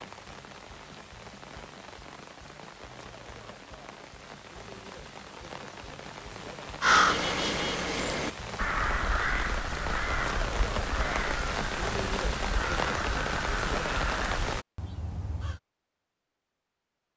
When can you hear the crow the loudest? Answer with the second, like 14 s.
7 s.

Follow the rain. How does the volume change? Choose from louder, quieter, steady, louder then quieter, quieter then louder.
louder.